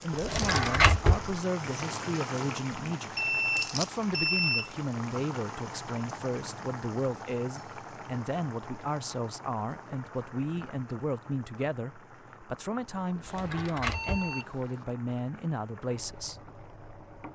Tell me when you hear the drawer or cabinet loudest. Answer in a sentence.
The volume of the drawer or cabinet peaks at 1 second.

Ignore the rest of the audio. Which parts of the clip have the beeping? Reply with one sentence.
You can hear the beeping from 3.1 to 4.7 s and from 13.9 to 14.8 s.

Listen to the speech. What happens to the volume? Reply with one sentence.
The loudness of the speech stays about the same.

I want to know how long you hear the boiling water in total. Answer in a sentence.
You can hear the boiling water for 17 seconds altogether.